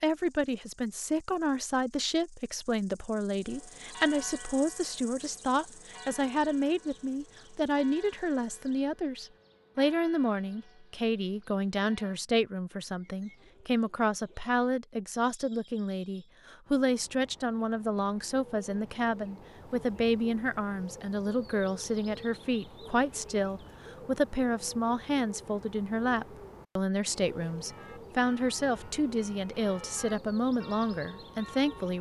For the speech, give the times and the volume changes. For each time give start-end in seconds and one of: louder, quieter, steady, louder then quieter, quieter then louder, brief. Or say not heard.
0.0-31.9 steady.